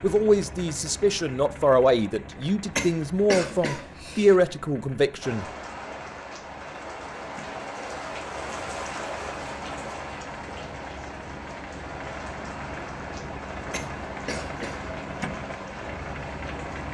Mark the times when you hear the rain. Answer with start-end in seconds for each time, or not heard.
5.2-16.8.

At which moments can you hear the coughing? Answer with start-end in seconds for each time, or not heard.
2.8-4.3, 13.7-14.8.